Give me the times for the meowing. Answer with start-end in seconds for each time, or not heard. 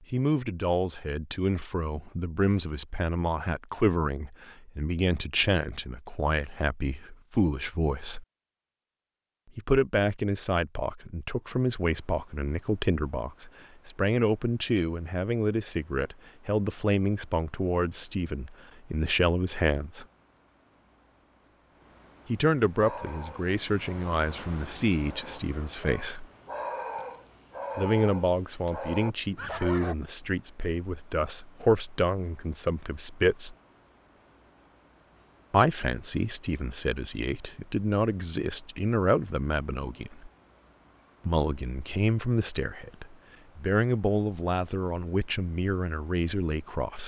not heard.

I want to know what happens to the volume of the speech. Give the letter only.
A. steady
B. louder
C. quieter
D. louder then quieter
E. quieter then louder
A.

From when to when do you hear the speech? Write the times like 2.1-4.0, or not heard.
0.1-8.2, 9.6-20.1, 22.2-26.2, 27.8-33.5, 35.5-40.3, 41.2-47.0.